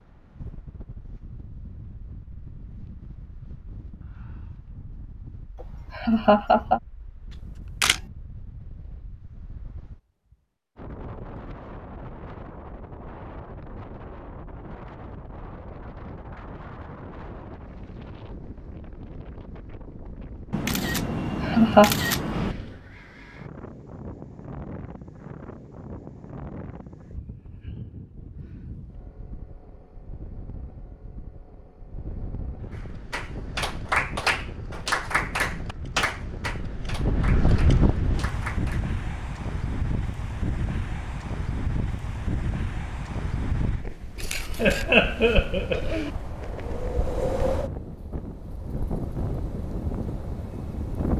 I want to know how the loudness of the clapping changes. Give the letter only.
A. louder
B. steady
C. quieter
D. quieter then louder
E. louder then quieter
C.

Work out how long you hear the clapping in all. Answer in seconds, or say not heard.
6 s.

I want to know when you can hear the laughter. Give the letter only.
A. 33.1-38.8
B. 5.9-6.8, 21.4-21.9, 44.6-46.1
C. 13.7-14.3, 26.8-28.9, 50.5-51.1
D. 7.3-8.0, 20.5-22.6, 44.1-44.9
B.